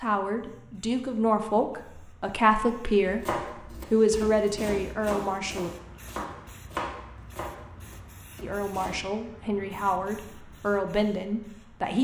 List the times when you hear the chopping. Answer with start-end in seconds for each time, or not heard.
3.0-9.1.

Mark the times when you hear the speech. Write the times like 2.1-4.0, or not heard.
0.0-3.2, 3.9-5.7, 8.4-11.9.